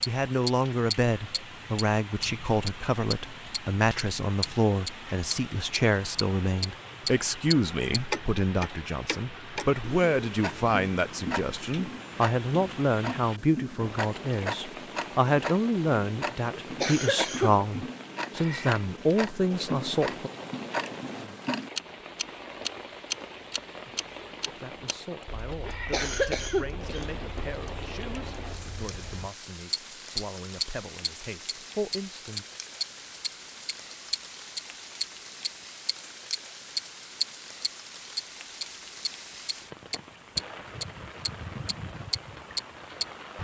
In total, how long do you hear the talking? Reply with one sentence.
The talking can be heard for 28 seconds in total.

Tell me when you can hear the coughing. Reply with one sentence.
You can hear the coughing from 16.5 to 17.6 s and from 25.6 to 27.1 s.